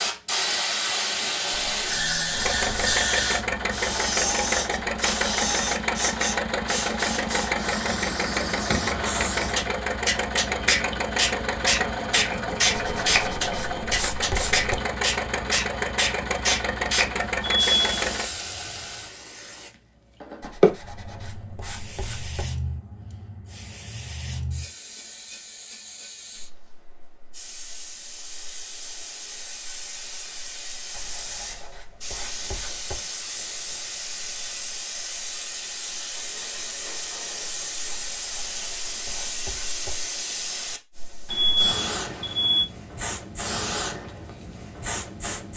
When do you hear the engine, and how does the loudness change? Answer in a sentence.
The engine can be heard from 2.3 to 18.3 s, at a steady volume.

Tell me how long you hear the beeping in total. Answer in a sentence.
You can hear the beeping for 2 seconds altogether.